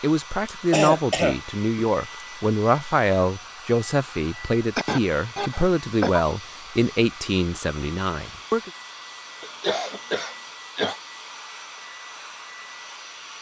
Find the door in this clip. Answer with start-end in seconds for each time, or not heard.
not heard.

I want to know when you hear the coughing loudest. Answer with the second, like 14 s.
1 s.